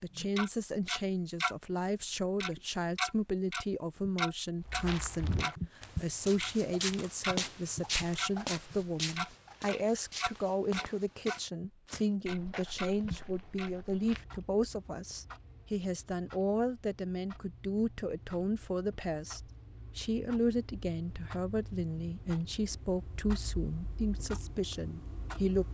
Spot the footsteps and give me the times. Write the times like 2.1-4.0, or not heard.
4.6-14.2.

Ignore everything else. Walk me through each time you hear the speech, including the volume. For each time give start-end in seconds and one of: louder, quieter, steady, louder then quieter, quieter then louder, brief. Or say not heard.
0.0-25.6 steady.